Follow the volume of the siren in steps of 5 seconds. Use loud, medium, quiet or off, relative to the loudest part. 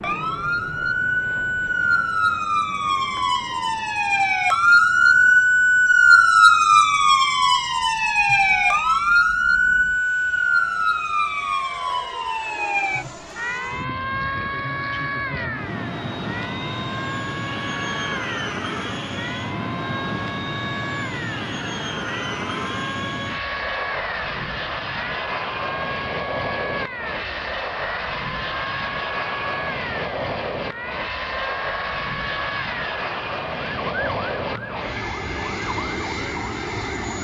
medium, loud, medium, quiet, quiet, quiet, quiet, quiet.